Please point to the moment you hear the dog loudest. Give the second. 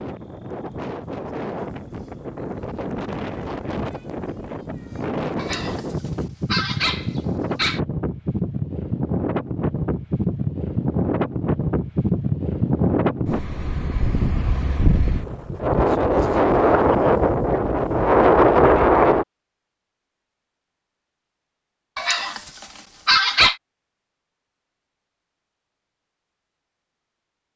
23 s.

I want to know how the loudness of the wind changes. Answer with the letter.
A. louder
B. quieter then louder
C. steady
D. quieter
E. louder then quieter
A.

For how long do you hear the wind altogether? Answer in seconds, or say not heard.
19 s.